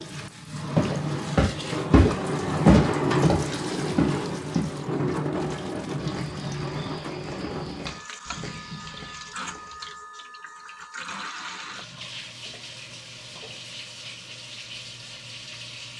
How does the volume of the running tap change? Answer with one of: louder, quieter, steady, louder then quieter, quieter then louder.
quieter.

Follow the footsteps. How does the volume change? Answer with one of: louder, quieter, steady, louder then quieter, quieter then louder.
quieter.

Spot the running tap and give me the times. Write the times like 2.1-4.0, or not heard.
0.0-15.9.